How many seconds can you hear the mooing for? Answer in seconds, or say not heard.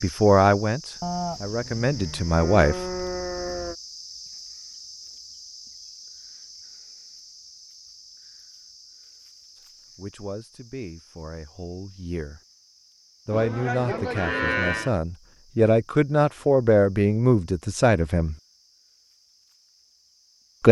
4 s.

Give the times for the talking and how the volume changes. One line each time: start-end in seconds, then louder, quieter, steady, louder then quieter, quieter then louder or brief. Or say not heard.
0.0-2.8 brief
9.9-12.4 brief
13.2-18.4 louder.